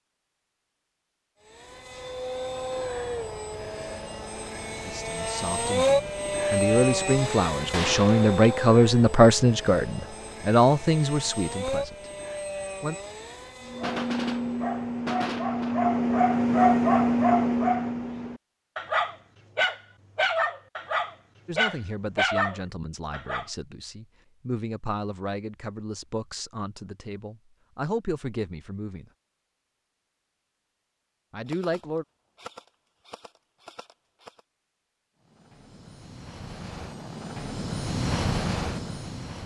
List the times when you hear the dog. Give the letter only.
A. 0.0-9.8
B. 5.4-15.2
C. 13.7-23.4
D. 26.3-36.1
C.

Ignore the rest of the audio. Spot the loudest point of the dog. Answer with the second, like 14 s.
17 s.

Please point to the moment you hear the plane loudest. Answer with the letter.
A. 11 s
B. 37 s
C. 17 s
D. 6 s
D.